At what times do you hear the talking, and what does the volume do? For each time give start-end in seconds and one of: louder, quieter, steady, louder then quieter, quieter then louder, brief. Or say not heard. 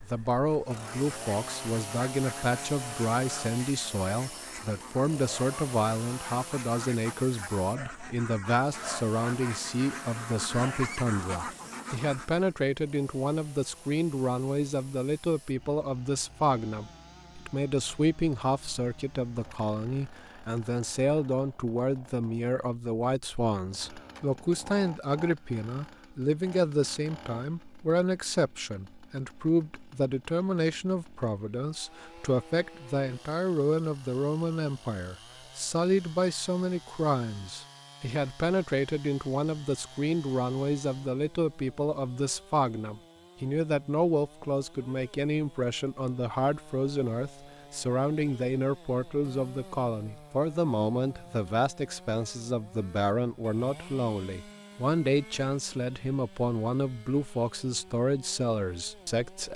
0.1-59.5 steady.